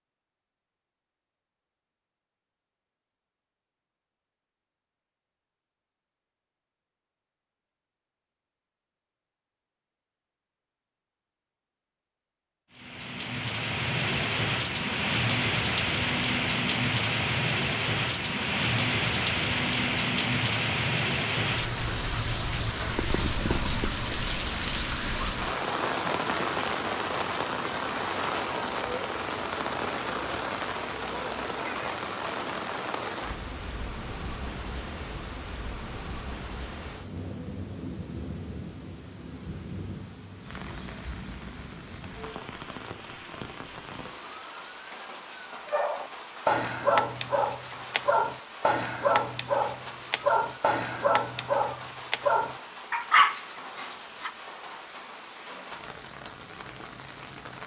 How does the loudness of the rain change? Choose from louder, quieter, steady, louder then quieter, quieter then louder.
quieter.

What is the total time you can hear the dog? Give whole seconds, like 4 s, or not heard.
9 s.